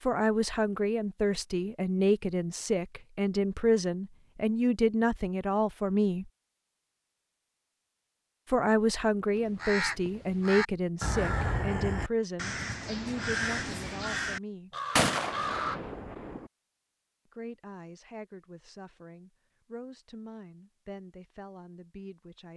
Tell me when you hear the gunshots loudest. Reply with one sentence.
The loudest moment of the gunshots is at 15 seconds.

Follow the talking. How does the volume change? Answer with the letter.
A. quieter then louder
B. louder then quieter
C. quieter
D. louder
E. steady
C.